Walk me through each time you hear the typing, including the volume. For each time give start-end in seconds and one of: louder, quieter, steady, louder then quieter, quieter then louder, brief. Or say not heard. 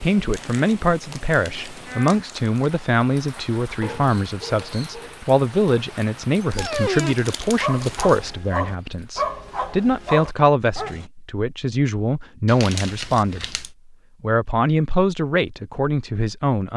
not heard.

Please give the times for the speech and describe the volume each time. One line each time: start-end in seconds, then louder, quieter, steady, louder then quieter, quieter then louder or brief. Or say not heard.
0.0-16.7 steady.